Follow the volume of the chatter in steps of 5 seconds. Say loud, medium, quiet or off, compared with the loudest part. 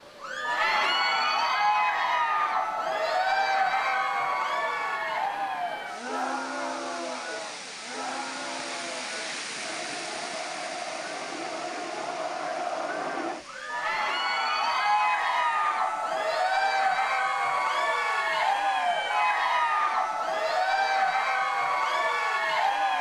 loud, medium, medium, loud, loud.